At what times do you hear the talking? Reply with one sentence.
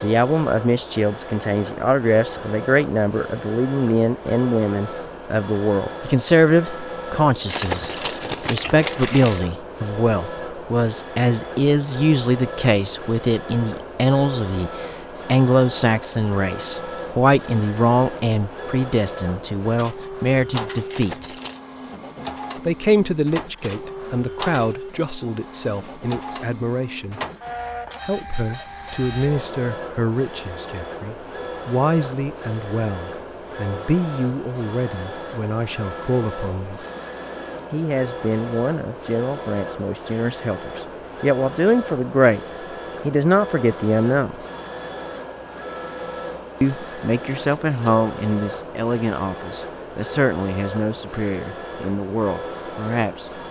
You can hear the talking from 0.0 to 21.4 s, from 22.6 to 27.2 s, from 28.0 to 36.9 s, from 37.7 to 42.4 s, from 43.0 to 44.4 s and from 46.6 to 53.4 s.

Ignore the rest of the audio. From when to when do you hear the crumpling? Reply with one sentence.
You can hear the crumpling from 7.5 to 9.4 s, from 20.9 to 21.6 s and from 47.3 to 48.0 s.